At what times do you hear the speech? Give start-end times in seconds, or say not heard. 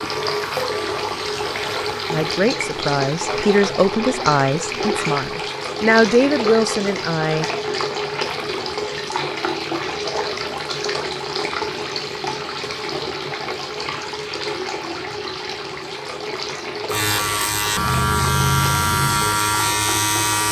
2.1-7.5.